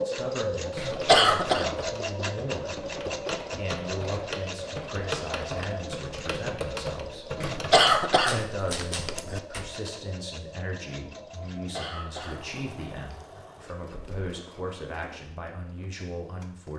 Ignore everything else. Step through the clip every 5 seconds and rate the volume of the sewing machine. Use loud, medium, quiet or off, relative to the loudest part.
loud, medium, quiet, quiet.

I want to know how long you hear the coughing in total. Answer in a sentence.
You can hear the coughing for 5 seconds altogether.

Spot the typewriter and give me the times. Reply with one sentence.
The typewriter can be heard from 0.7 to 9.9 s.